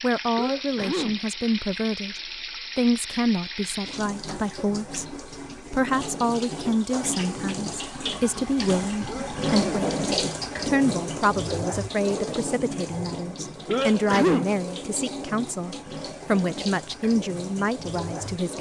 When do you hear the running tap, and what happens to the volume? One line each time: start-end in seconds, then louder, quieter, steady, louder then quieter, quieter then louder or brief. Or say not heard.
0.0-18.5 louder then quieter.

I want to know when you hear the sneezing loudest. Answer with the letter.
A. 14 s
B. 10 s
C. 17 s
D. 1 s
A.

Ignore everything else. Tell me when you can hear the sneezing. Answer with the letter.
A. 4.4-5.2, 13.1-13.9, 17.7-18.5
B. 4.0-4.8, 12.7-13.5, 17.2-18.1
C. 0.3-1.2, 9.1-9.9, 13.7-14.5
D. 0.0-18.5
C.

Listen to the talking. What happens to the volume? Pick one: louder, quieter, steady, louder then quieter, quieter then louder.
steady.